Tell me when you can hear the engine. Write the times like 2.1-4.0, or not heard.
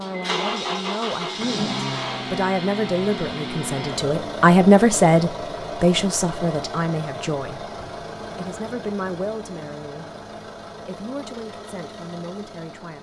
0.0-12.9.